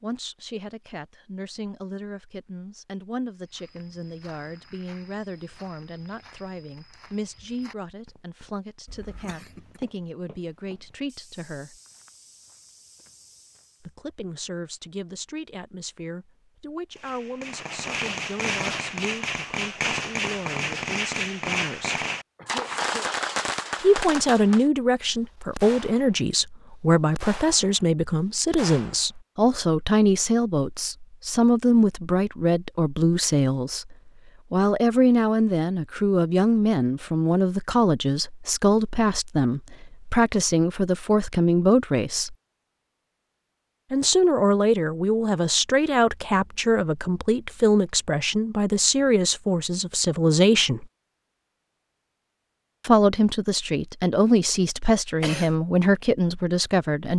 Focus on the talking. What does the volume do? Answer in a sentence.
The volume of the talking goes up.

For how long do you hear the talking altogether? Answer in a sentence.
You can hear the talking for 50 seconds altogether.